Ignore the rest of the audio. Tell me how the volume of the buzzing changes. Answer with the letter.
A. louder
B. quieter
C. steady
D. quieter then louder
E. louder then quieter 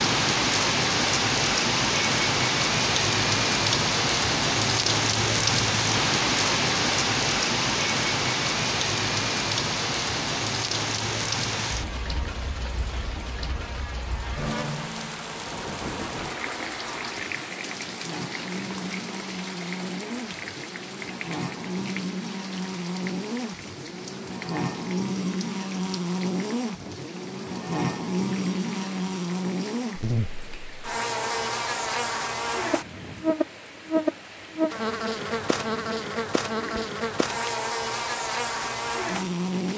A.